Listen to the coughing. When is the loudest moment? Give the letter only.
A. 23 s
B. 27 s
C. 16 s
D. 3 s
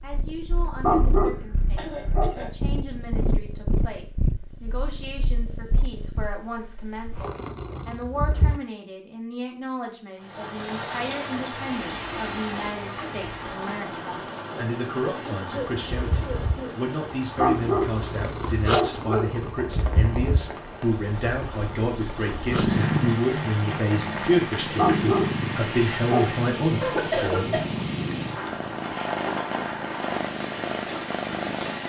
B.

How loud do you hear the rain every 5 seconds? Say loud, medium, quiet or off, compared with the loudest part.
off, off, loud, medium, loud, loud, loud.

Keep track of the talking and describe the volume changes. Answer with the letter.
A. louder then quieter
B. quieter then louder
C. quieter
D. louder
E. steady
D.